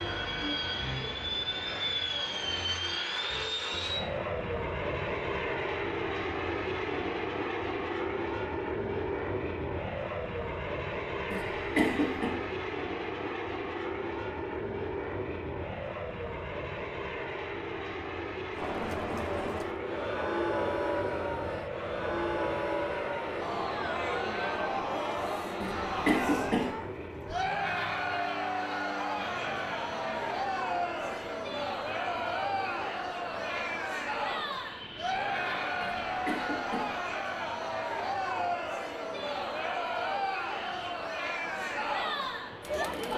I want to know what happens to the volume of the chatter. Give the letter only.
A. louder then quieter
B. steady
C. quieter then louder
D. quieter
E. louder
B.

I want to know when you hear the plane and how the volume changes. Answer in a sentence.
You can hear the plane from 0.0 to 42.9 s, getting quieter.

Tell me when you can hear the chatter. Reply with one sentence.
You can hear the chatter from 18.5 to 43.1 s.